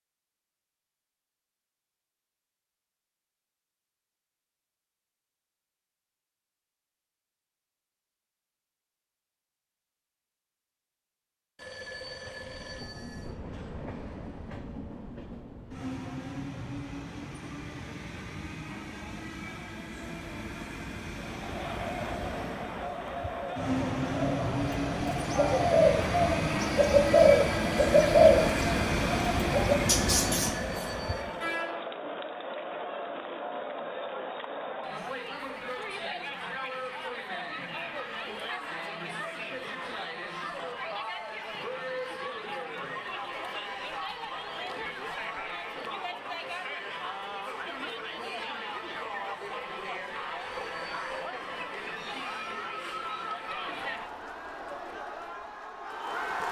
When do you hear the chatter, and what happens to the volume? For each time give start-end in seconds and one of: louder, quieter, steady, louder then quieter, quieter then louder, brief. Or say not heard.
21.2-56.4 steady.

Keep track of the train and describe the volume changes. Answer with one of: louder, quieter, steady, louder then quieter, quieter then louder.
louder.